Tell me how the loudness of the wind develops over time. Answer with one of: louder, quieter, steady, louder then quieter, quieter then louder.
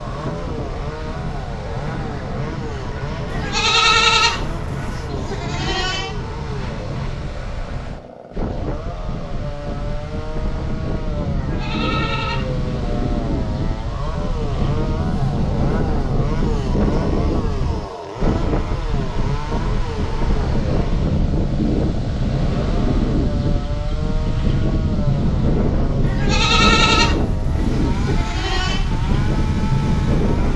louder.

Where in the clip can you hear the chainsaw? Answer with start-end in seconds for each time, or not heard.
0.0-30.5.